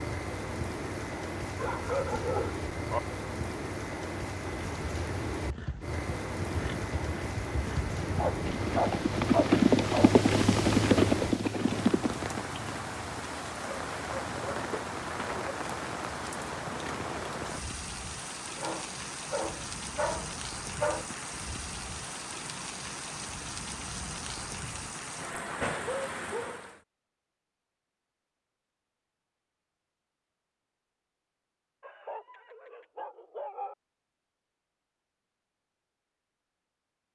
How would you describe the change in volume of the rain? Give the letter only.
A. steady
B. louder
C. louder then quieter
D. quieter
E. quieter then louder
A.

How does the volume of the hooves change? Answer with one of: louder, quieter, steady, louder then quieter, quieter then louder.
louder.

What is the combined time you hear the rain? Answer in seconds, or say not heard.
27 s.